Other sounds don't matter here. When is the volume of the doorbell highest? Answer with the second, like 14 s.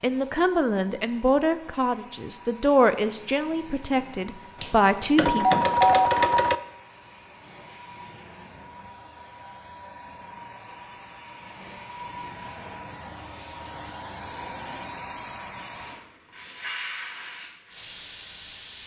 6 s.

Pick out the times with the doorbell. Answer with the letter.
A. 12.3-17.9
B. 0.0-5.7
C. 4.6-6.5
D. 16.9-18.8
C.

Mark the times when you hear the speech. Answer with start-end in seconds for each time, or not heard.
0.0-5.7.